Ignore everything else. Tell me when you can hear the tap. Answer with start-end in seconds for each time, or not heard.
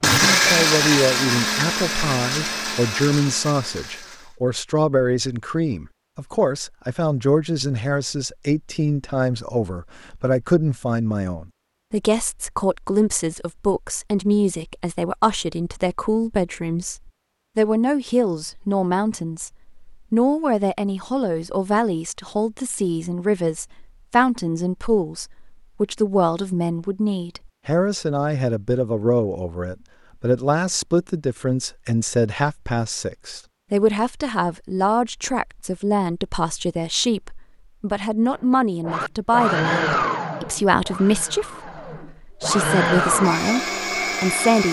not heard.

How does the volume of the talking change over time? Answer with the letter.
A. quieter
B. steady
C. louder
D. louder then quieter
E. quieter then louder
B.